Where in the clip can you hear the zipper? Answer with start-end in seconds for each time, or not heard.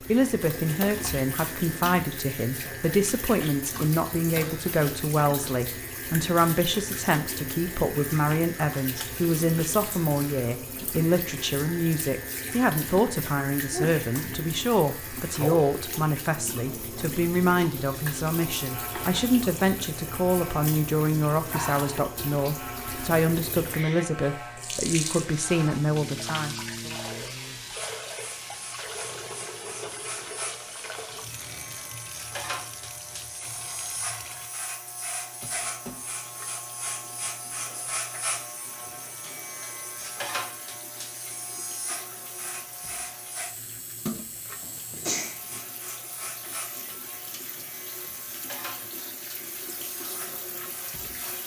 not heard.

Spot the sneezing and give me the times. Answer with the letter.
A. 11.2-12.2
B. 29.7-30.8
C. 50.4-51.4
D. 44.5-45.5
D.